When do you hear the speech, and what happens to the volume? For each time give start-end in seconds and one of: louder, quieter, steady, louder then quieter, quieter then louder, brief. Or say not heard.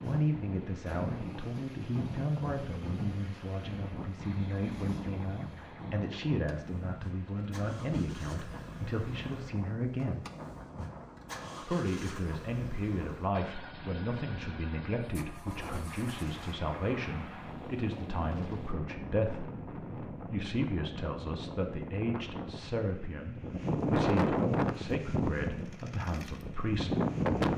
0.0-10.2 steady
11.6-27.0 steady.